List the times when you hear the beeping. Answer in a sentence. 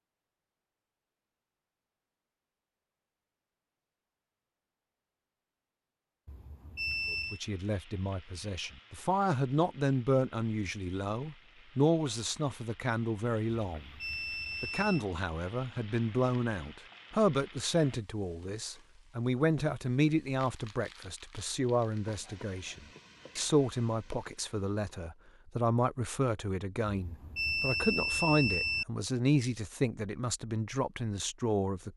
You can hear the beeping from 6.2 to 7.4 s, from 13.7 to 15.1 s and from 26.9 to 28.9 s.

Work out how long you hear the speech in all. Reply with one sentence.
You can hear the speech for 24 seconds altogether.